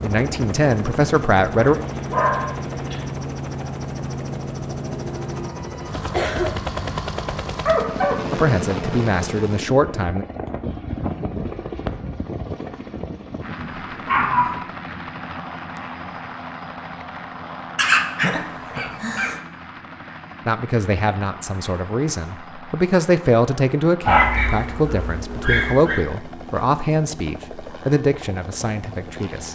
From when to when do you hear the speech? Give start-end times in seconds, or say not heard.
0.0-1.8, 8.3-10.2, 20.4-29.5.